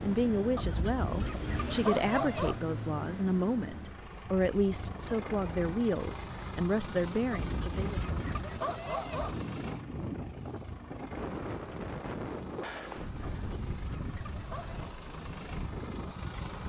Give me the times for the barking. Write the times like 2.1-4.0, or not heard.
0.6-2.6, 7.4-9.3, 13.3-14.9.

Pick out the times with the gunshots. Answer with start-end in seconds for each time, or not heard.
not heard.